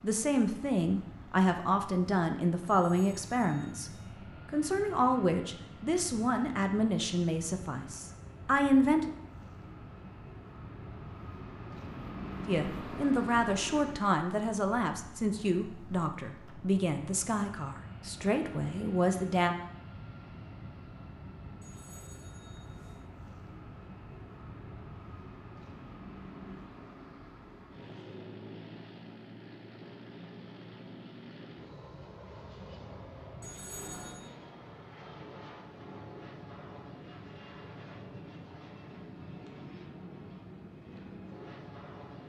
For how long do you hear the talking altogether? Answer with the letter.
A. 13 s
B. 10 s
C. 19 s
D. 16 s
D.